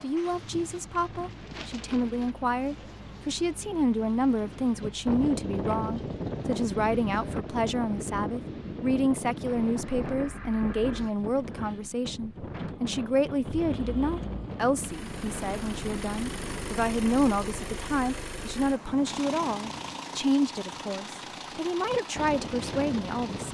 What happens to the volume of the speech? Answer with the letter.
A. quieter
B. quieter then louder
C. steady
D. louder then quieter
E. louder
C.